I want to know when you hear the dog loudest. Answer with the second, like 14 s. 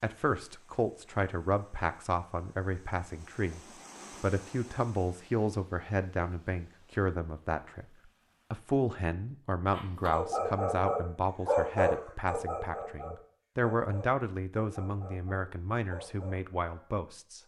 12 s.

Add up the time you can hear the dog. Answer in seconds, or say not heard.
7 s.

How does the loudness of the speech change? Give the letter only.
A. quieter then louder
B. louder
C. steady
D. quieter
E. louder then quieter
C.